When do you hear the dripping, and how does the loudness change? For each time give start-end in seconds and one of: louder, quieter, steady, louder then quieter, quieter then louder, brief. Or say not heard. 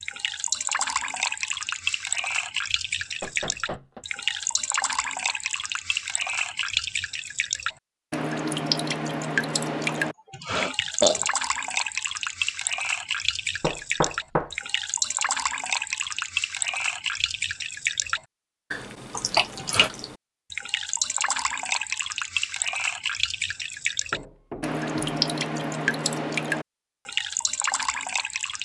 0.0-28.6 steady.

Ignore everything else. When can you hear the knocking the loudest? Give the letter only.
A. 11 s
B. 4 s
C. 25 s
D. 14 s
D.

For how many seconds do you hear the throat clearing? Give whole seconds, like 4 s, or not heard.
2 s.